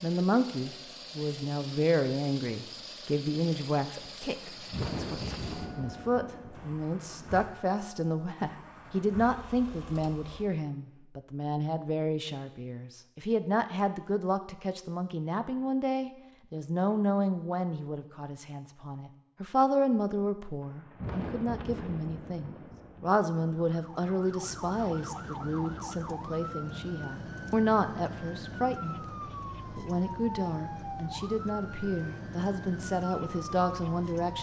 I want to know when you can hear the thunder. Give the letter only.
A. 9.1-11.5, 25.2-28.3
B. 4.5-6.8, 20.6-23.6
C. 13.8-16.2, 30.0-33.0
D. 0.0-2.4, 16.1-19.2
B.